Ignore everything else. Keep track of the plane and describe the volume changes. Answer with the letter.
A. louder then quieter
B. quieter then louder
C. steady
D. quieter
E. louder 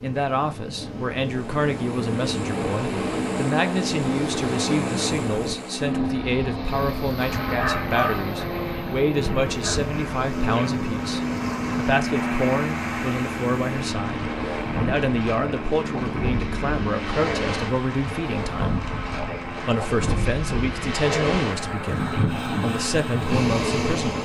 D.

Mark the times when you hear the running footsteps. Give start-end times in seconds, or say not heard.
not heard.